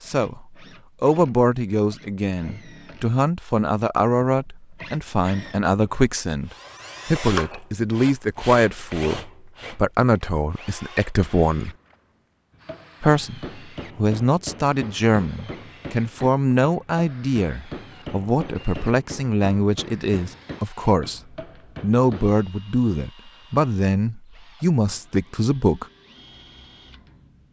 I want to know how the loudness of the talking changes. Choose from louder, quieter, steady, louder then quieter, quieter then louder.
steady.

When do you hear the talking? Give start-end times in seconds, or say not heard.
0.0-11.8, 13.0-21.2, 21.8-25.9.